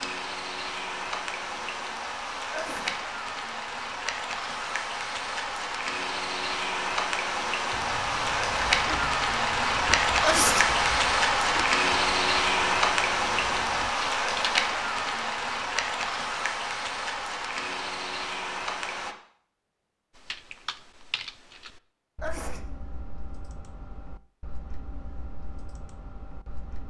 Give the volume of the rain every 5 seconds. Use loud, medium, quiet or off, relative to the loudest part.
medium, loud, loud, medium, off, off.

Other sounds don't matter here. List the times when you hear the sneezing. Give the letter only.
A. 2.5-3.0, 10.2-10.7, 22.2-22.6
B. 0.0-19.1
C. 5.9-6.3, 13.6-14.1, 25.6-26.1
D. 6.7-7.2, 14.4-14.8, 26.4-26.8
A.